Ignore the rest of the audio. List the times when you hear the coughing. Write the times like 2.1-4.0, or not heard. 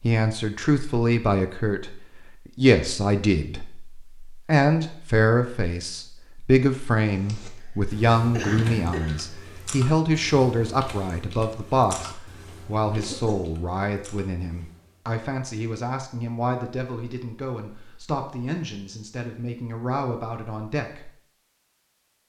7.6-9.3, 12.9-13.4.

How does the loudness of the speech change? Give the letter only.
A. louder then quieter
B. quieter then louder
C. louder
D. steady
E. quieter
E.